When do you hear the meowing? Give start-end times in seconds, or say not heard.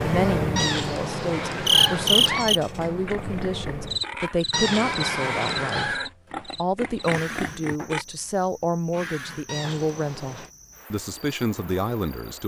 0.6-2.5, 4.5-6.0, 9.4-10.5.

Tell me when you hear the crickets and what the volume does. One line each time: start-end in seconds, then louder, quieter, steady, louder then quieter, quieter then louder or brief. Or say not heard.
0.0-12.4 quieter.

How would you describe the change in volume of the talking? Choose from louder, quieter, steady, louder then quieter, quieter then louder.
steady.